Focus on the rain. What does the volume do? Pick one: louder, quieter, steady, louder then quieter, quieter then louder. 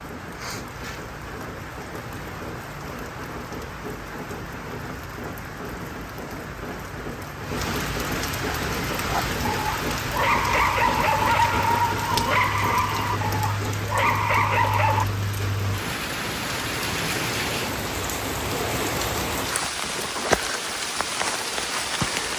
louder.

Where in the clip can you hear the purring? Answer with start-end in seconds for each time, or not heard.
not heard.